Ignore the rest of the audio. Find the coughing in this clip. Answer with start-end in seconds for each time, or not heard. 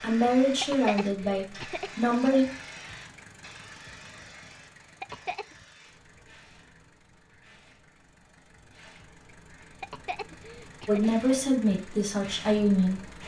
0.6-2.3, 5.0-5.5, 9.8-11.1.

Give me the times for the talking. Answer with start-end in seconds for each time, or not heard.
0.0-2.5, 10.8-13.0.